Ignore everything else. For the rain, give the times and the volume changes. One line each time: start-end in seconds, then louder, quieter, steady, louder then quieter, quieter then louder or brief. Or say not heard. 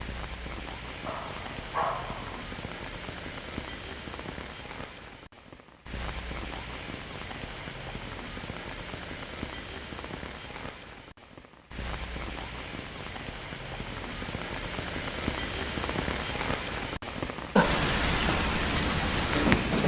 0.0-19.8 louder.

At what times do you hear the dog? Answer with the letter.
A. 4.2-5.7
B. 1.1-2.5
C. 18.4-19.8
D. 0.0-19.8
B.